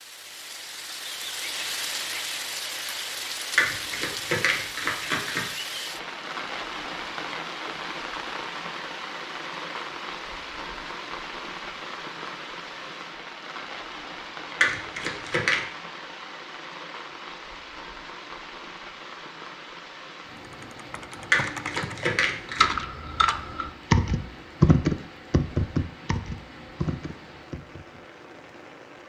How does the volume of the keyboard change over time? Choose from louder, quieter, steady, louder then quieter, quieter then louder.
louder then quieter.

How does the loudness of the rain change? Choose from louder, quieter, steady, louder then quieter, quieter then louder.
quieter.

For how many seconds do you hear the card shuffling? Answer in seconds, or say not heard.
4 s.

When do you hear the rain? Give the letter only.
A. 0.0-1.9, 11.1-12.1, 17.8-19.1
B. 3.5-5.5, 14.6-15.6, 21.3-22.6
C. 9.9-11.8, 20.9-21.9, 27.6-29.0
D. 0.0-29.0
D.